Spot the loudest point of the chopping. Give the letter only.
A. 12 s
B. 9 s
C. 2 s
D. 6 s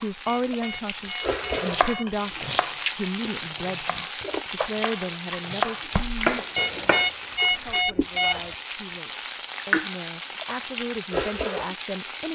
D.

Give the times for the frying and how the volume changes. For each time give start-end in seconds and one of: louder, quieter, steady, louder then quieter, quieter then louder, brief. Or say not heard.
0.0-12.3 steady.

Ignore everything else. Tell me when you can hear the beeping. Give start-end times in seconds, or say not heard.
0.2-2.2, 6.5-8.6.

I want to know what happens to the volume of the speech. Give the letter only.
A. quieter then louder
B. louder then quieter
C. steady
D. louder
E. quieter
A.